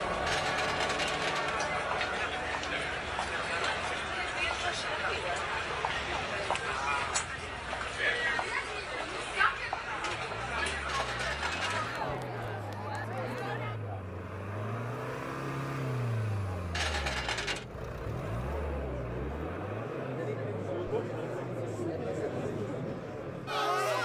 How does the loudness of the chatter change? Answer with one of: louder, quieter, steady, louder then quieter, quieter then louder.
quieter then louder.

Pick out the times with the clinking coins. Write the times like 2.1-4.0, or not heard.
0.2-1.7, 10.8-11.9, 16.7-17.6.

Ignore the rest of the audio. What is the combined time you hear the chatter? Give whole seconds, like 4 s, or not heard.
24 s.